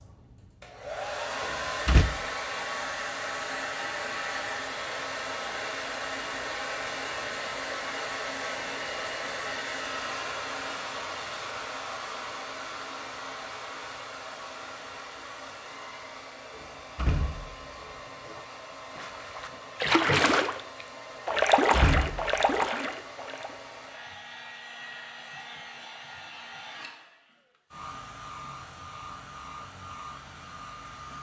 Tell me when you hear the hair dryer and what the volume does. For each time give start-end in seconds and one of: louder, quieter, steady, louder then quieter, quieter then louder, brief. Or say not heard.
0.0-31.1 quieter.